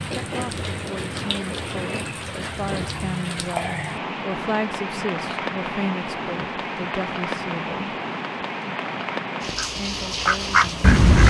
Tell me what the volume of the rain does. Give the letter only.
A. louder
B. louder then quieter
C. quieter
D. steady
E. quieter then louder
D.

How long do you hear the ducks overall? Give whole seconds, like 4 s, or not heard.
2 s.